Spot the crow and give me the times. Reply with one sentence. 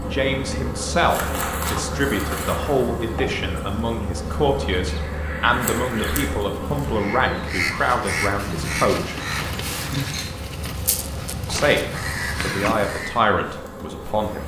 You can hear the crow from 4.8 to 13.2 s.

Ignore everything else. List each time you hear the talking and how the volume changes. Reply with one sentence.
The talking can be heard from 0.0 to 9.2 s, at a steady volume; and briefly from 11.5 to 14.4 s.